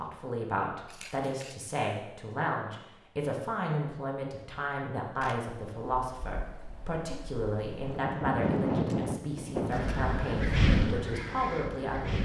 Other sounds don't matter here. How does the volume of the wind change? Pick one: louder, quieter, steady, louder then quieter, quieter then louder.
louder.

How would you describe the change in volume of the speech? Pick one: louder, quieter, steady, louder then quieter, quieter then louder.
steady.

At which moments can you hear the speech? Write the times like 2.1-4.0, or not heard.
0.0-12.2.